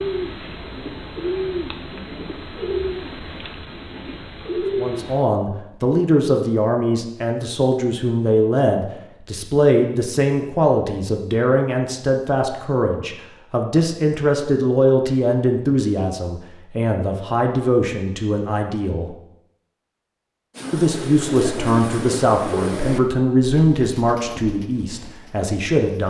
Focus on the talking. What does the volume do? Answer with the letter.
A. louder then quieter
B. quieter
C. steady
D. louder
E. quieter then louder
C.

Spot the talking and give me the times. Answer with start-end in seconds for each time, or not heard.
4.8-19.1, 20.7-26.0.